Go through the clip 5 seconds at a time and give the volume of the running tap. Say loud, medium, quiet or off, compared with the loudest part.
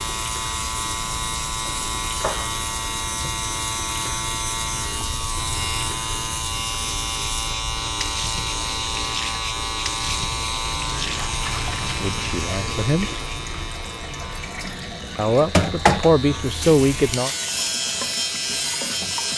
medium, medium, medium, loud.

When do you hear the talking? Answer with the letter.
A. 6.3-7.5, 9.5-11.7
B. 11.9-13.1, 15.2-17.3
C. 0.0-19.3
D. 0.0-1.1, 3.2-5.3
B.